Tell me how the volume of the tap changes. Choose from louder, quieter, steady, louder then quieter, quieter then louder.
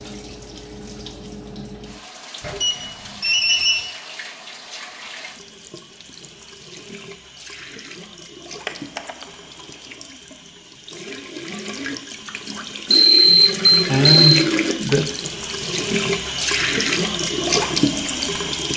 louder.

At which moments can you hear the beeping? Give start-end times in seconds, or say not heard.
2.4-3.9, 8.7-9.2, 12.9-14.4.